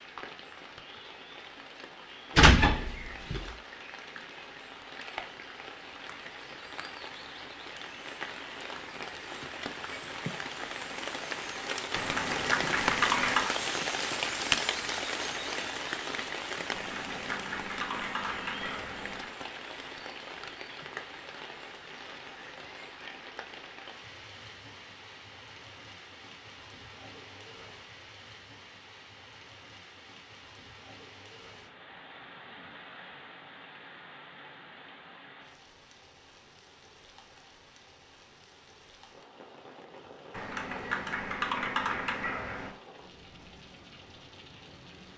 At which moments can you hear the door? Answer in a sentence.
The door can be heard from 2.4 to 3.5 s.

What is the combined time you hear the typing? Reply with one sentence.
The typing can be heard for 7 seconds in total.